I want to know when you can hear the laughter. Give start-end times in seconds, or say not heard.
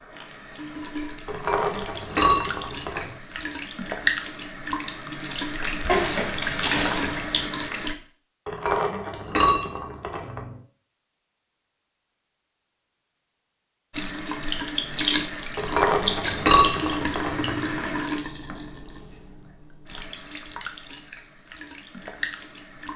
not heard.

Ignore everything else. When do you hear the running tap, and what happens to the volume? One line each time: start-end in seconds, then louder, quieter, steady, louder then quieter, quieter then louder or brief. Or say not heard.
0.0-8.0 louder
13.9-22.9 quieter.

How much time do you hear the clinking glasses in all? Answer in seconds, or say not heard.
6 s.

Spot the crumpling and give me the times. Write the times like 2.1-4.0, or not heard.
5.8-7.4.